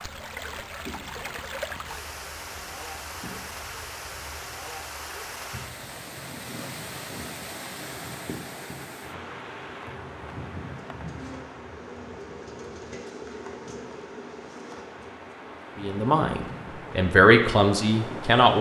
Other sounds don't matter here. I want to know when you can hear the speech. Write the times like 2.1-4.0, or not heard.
15.8-18.5.